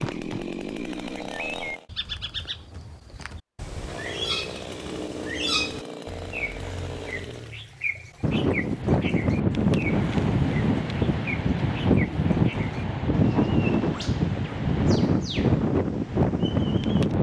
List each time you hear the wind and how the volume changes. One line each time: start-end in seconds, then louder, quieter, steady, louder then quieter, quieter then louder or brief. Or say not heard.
8.2-17.1 steady.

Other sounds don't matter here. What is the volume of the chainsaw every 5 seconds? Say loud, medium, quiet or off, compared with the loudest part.
loud, loud, off, off.